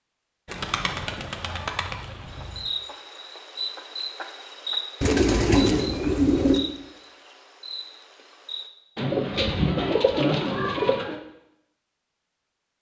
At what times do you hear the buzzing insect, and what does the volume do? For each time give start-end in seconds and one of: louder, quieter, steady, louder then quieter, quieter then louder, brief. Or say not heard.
2.2-8.7 quieter.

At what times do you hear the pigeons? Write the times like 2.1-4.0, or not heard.
0.5-2.6, 5.0-6.7, 8.9-11.2.